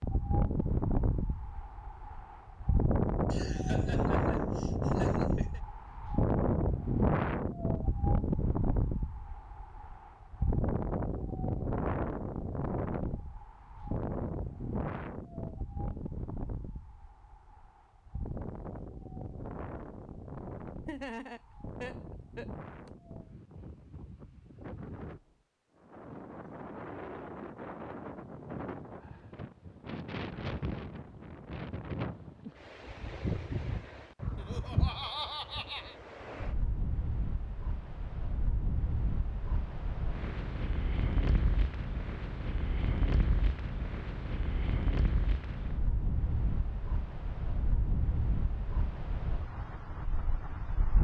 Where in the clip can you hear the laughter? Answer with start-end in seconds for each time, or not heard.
3.3-5.6, 20.9-22.9, 34.4-36.0.